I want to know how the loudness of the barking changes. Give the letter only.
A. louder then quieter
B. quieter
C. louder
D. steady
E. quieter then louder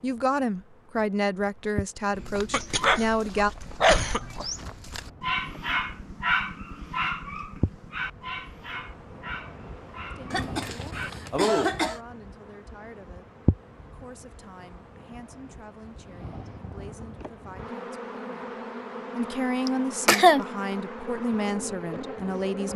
B.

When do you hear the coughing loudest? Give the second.
20 s.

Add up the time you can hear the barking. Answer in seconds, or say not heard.
9 s.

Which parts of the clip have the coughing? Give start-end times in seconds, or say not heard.
2.5-4.5, 10.3-12.0, 19.6-20.4.